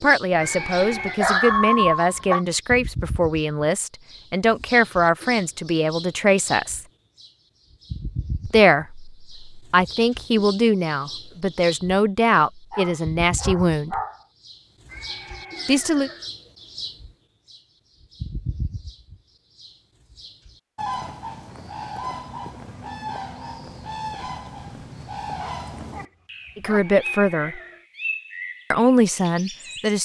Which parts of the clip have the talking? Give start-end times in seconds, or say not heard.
0.0-6.8, 8.4-13.9, 15.7-16.1, 26.6-27.6, 28.7-29.9.